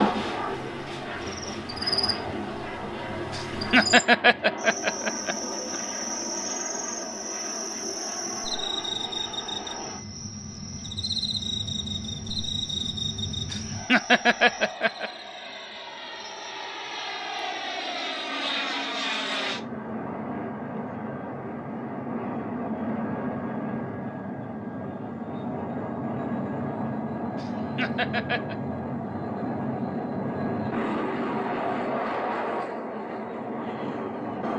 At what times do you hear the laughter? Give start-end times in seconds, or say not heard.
3.3-5.8, 13.5-15.1, 27.4-28.6.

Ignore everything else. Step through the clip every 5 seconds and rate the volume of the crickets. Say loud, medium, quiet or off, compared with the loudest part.
loud, loud, loud, quiet, off, off, off.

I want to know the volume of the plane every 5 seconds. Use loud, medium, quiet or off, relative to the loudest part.
medium, medium, medium, loud, loud, loud, loud.